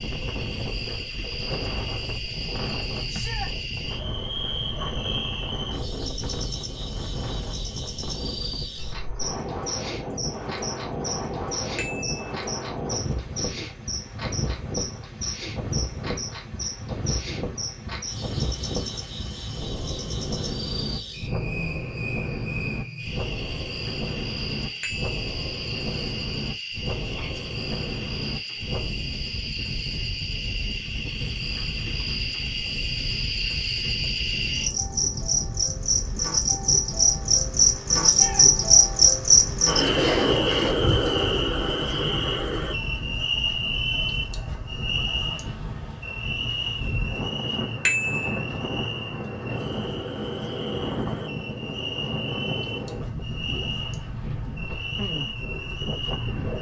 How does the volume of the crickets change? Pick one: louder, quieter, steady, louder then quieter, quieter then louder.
louder then quieter.